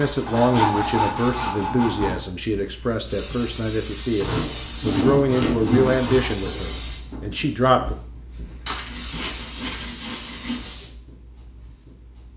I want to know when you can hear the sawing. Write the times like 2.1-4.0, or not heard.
0.2-2.2, 4.2-6.2, 8.7-10.8.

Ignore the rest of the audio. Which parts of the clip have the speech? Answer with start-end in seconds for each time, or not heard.
0.0-8.0.